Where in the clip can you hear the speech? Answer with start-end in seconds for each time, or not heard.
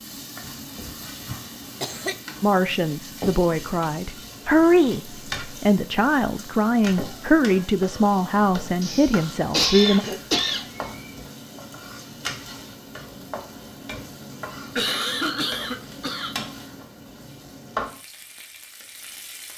2.4-10.1.